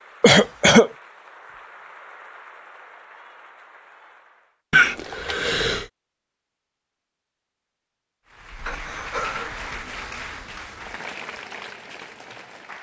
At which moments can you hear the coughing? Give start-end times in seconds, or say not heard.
0.2-0.9, 4.7-5.8, 8.7-9.7.